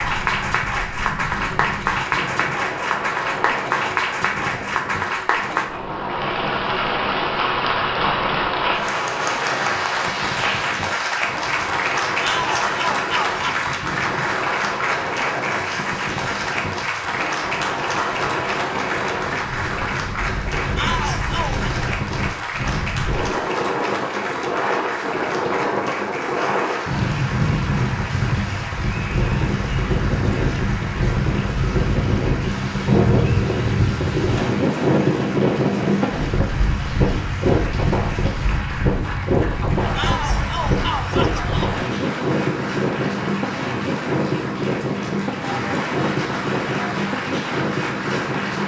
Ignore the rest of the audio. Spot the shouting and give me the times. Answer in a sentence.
The shouting can be heard from 12.2 to 13.7 s, from 20.8 to 21.6 s and from 40.0 to 41.8 s.